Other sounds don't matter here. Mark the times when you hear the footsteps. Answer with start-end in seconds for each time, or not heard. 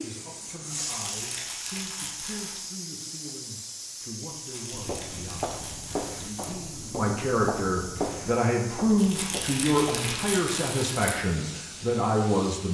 4.7-10.2.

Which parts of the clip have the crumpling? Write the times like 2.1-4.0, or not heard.
0.7-2.6, 4.3-6.5, 8.9-11.2.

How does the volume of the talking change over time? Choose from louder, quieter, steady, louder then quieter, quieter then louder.
louder.